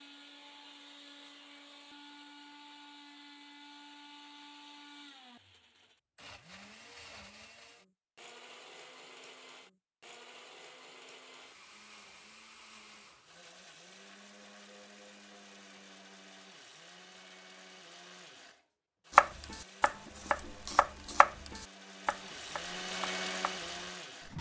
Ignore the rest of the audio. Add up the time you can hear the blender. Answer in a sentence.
You can hear the blender for 24 seconds altogether.